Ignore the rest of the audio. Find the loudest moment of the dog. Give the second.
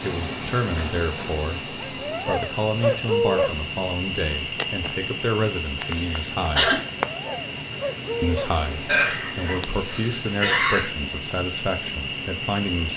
3 s.